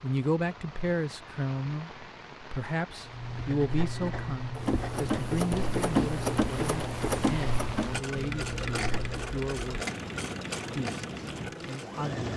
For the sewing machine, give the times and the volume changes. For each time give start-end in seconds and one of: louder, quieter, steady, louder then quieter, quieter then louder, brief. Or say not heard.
4.5-12.3 quieter.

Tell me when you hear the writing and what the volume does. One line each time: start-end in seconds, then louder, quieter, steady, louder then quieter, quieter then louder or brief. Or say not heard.
3.0-9.3 steady.